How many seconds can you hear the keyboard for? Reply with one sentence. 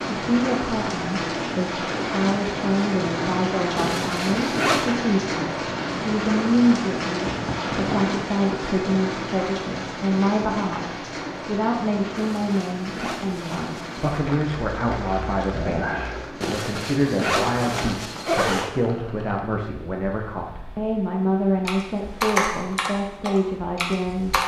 You can hear the keyboard for 3 seconds altogether.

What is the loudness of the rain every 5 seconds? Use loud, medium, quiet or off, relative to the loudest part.
loud, loud, medium, quiet, quiet.